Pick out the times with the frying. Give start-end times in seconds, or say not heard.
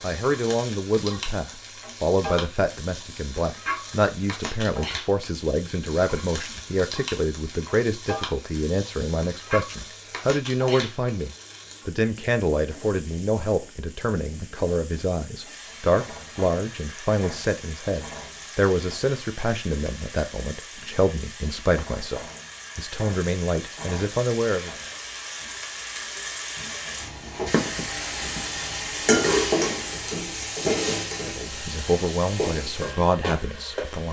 0.0-34.0.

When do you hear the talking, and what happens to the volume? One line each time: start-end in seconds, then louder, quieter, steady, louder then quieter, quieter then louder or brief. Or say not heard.
0.0-24.8 steady
31.2-34.0 brief.